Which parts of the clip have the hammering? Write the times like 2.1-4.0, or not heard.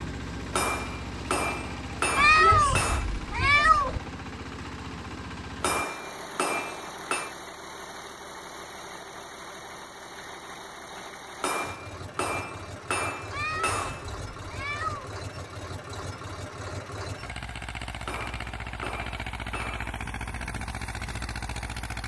0.5-3.0, 5.6-7.3, 11.4-14.1, 18.1-19.9.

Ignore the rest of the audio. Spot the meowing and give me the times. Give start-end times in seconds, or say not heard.
2.1-4.0, 13.3-15.1.